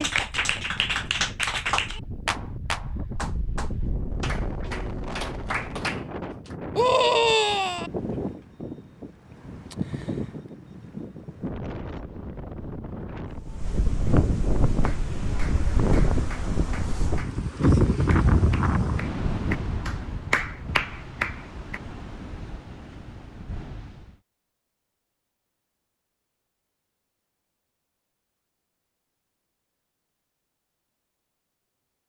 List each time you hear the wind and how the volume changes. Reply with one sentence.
You can hear the wind from 0.0 to 24.2 s, getting louder then quieter.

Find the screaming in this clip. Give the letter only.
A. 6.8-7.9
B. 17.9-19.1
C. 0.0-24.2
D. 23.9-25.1
A.